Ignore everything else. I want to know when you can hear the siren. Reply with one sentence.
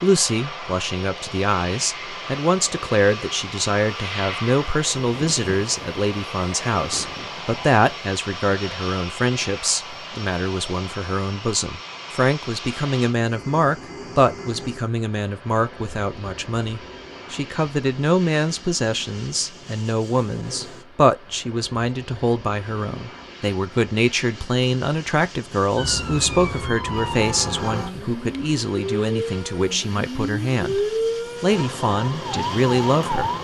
You can hear the siren from 25.8 to 33.3 s.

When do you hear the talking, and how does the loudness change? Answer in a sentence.
The talking can be heard from 0.0 to 30.8 s, at a steady volume; and briefly from 31.4 to 33.3 s.